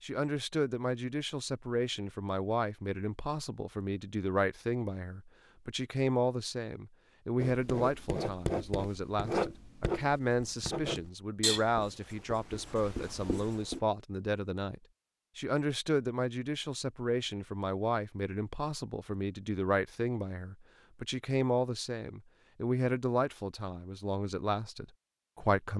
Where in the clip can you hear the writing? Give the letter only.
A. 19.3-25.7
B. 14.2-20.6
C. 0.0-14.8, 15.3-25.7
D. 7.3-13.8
D.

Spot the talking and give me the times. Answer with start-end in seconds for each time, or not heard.
0.0-14.8, 15.3-25.7.